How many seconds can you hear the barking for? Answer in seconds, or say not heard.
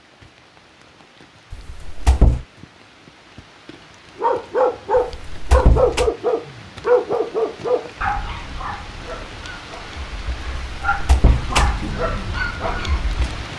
9 s.